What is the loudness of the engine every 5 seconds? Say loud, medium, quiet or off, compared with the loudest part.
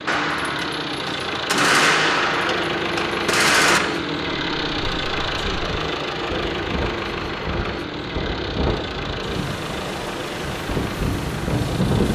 loud, loud, medium.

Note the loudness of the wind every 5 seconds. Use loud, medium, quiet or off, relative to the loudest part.
off, medium, loud.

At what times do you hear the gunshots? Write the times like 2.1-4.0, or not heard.
0.1-3.8.